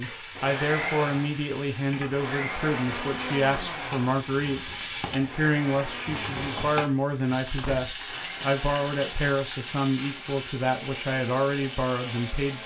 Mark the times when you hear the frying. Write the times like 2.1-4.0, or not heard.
0.0-12.6.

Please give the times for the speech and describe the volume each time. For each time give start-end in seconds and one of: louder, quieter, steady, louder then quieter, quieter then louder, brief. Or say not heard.
0.0-12.6 steady.